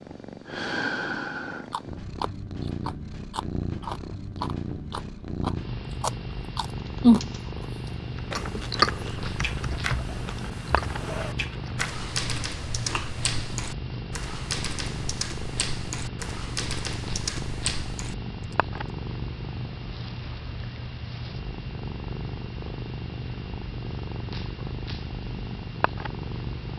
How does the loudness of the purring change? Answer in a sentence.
The volume of the purring stays about the same.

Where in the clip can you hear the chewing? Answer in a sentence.
You can hear the chewing from 1.7 to 7.3 s and from 8.3 to 13.3 s.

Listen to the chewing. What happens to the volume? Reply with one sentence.
The loudness of the chewing goes up, then down.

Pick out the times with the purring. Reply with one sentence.
You can hear the purring from 0.0 to 26.7 s.